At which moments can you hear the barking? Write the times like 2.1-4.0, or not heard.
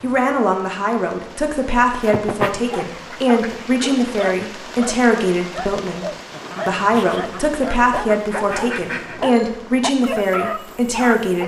2.7-11.4.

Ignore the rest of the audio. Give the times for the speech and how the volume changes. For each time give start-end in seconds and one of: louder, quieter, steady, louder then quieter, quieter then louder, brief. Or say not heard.
0.0-6.0 steady
6.7-11.4 steady.